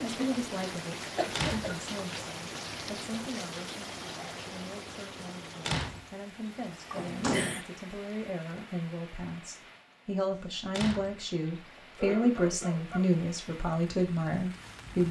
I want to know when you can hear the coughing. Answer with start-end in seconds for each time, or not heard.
1.1-2.2, 6.9-7.7, 11.9-13.1.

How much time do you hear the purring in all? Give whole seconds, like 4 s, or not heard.
not heard.